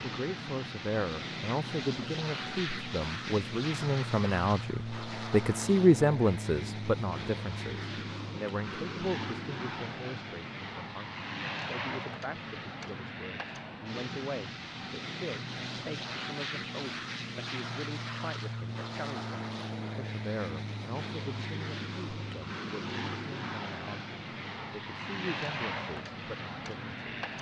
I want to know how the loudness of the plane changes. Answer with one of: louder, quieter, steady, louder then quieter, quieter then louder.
steady.